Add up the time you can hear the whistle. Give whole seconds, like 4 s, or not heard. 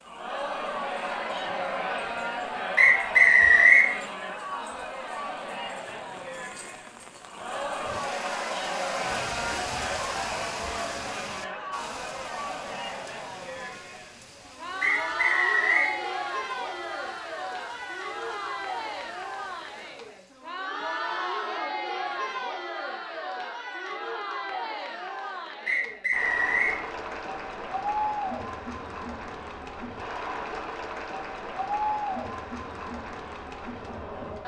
3 s.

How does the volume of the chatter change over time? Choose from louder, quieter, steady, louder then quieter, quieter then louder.
steady.